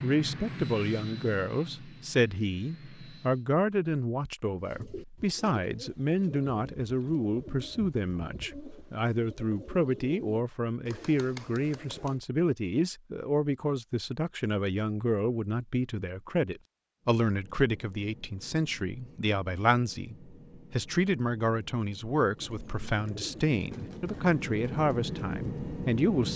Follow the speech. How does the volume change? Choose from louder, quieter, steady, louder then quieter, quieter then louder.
steady.